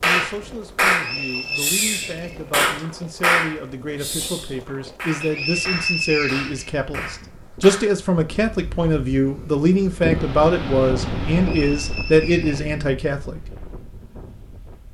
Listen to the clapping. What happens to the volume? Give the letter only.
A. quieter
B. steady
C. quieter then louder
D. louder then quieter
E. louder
A.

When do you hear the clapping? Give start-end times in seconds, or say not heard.
0.0-8.0.